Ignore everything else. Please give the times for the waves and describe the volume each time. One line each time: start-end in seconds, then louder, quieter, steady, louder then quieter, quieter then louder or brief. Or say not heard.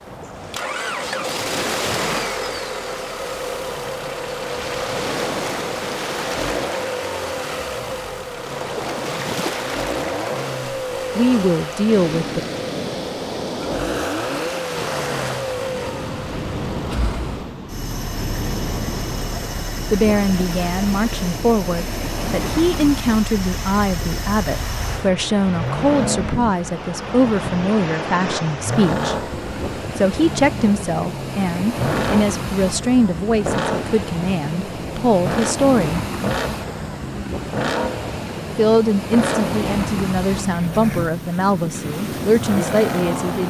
0.0-43.4 steady.